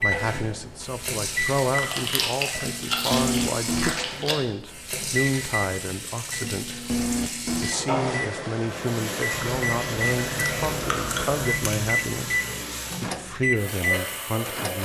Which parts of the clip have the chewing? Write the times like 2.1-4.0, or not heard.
1.6-4.5, 9.3-11.9.